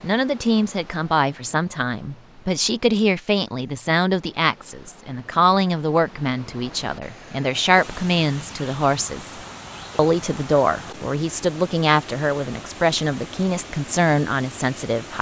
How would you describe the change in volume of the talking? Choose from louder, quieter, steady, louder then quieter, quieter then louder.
steady.